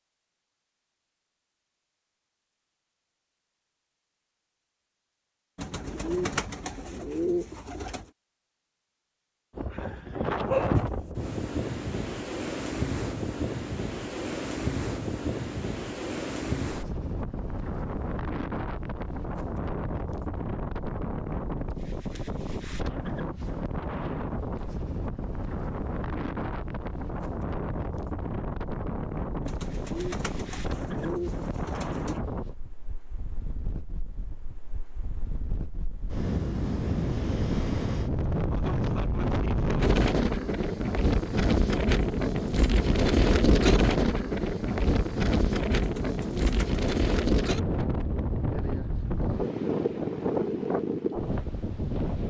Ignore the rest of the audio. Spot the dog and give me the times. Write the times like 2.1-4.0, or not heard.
10.3-11.1.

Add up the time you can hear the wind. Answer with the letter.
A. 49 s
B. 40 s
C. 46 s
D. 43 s
D.